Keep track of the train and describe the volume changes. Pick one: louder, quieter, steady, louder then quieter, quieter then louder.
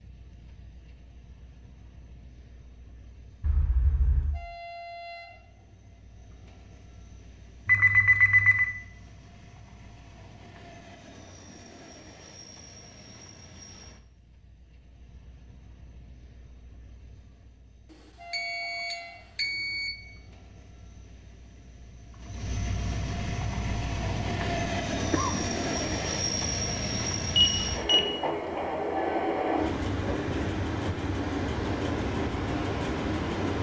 louder.